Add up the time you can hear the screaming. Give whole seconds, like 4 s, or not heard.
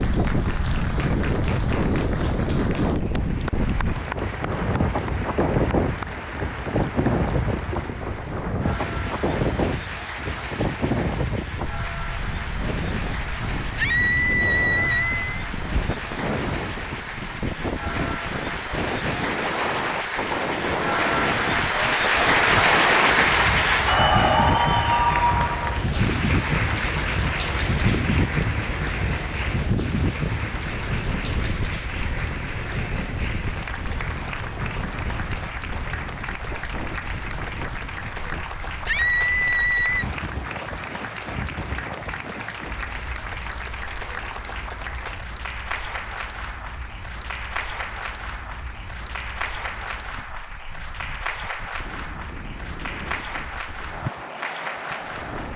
3 s.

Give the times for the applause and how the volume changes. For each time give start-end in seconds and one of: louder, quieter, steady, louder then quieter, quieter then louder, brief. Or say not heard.
0.0-55.5 louder then quieter.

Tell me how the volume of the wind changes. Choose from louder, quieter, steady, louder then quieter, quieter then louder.
quieter.